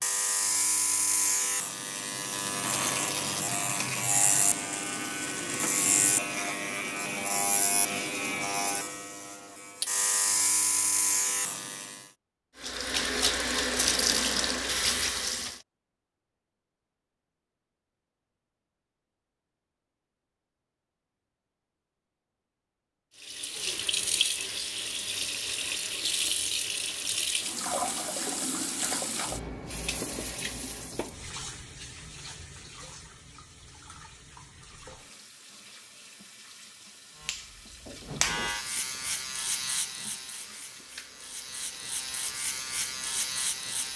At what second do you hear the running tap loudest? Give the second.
14 s.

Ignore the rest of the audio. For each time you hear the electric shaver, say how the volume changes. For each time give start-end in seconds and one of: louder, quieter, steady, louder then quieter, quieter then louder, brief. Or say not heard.
0.0-12.1 steady
37.2-43.9 quieter then louder.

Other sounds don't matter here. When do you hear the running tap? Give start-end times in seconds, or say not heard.
12.6-15.6, 23.1-43.9.